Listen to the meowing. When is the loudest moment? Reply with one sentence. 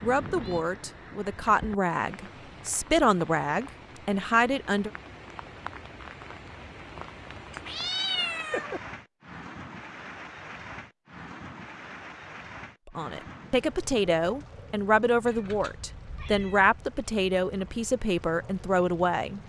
The loudest moment of the meowing is at 8 seconds.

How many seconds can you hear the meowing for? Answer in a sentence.
The meowing can be heard for 3 seconds in total.